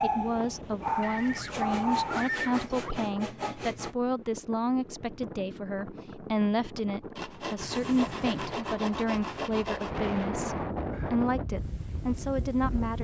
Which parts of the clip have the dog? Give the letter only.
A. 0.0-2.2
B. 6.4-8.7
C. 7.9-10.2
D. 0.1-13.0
A.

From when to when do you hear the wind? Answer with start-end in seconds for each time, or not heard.
0.1-13.0.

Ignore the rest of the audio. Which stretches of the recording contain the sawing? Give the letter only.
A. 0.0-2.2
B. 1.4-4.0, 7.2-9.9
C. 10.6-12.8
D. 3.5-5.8
B.